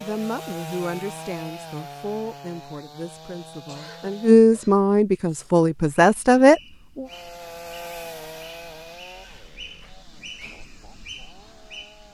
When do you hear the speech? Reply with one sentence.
You can hear the speech from 0.0 to 7.0 s.